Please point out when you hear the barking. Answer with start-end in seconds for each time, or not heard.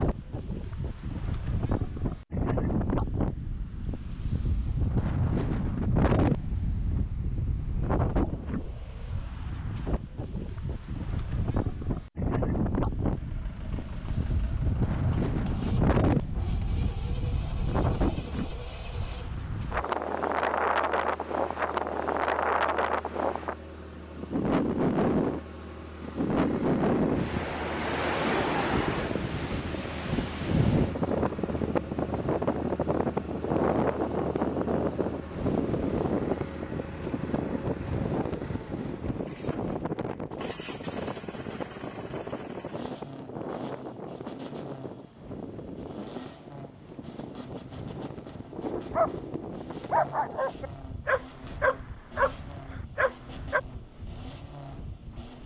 48.5-53.6.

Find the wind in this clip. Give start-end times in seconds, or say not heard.
0.0-55.4.